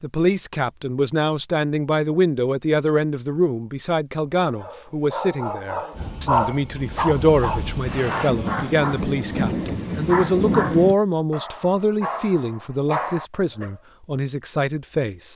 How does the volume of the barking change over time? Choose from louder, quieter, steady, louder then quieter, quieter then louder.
louder then quieter.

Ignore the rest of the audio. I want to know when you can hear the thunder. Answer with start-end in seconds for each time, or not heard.
8.2-10.9.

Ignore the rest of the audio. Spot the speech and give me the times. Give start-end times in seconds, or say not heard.
0.0-15.3.